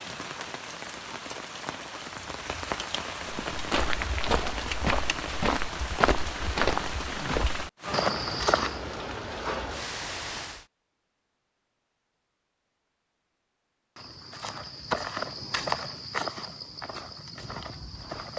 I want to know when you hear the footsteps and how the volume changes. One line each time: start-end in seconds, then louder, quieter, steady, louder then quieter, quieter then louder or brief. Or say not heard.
3.3-8.8 steady
13.9-18.3 quieter.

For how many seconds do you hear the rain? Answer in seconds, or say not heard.
11 s.